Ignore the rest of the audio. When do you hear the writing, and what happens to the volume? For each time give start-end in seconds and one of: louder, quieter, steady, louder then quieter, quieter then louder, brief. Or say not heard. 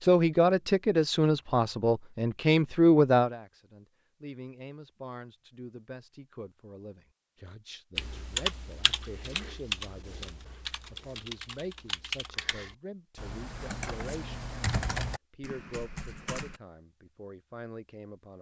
not heard.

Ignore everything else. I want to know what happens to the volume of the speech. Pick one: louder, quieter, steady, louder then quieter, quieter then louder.
quieter.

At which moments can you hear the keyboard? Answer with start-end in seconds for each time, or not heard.
8.0-16.6.